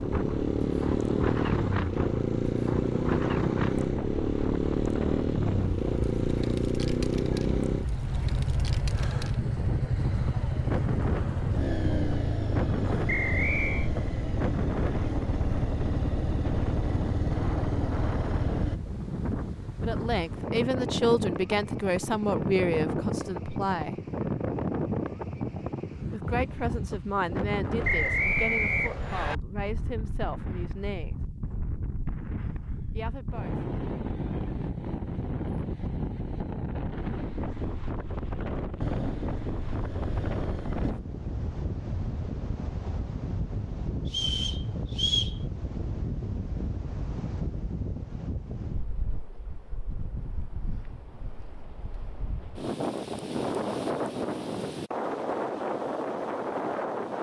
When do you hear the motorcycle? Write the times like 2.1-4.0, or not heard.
0.0-18.8, 38.8-41.0.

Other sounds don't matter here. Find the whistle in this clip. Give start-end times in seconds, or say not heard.
13.1-13.9, 27.8-29.4, 44.0-45.4.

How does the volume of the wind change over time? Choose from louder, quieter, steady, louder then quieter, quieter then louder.
steady.